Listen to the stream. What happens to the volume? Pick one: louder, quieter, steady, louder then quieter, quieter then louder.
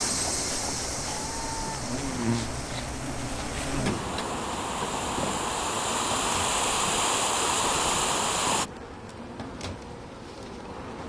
quieter then louder.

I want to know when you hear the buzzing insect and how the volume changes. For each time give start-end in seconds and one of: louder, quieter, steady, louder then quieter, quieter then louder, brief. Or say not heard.
0.0-11.0 quieter.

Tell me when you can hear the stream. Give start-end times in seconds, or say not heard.
0.0-8.7.